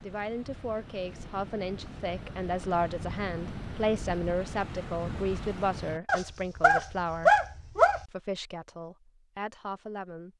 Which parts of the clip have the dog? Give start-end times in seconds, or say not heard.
6.0-8.1.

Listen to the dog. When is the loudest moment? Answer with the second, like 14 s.
7 s.